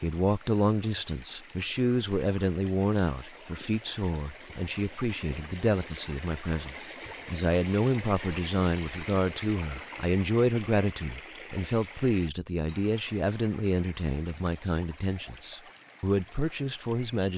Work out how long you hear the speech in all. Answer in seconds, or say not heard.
17 s.